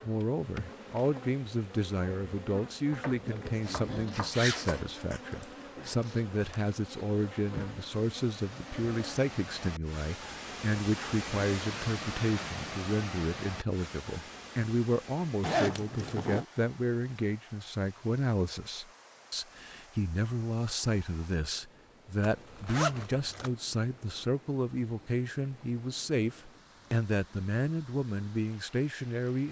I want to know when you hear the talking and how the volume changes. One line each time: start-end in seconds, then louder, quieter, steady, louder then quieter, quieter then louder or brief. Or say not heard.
0.0-29.4 steady.